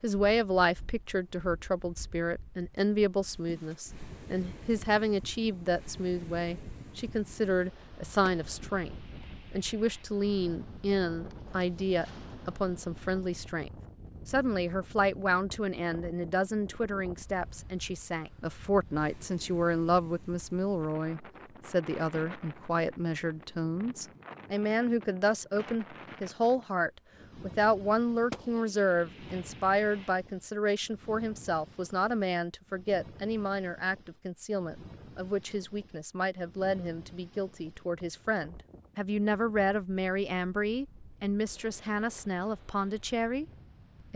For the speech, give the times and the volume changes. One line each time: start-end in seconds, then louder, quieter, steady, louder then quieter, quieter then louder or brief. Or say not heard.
0.0-43.5 steady.